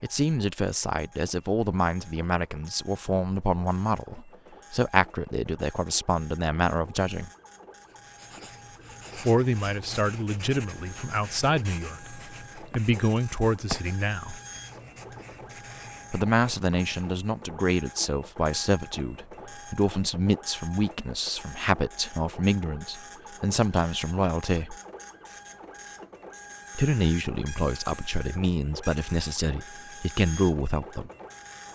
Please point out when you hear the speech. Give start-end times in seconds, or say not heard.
0.0-7.3, 9.2-14.3, 16.1-24.8, 26.8-31.1.